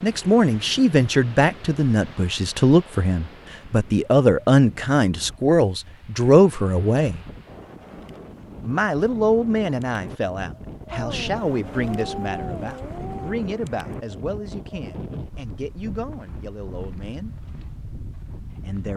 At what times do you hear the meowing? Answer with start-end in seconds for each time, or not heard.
10.9-13.3.